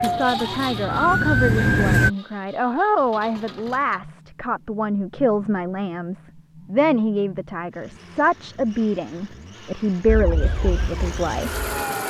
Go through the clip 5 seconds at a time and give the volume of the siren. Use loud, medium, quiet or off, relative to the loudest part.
loud, off, quiet.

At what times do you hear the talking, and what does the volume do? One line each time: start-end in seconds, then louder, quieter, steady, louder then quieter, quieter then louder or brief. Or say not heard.
0.0-11.6 steady.